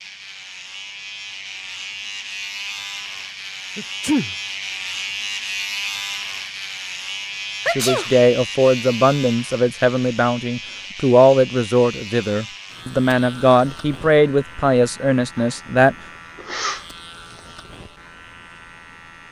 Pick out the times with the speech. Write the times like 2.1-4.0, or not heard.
7.8-15.9.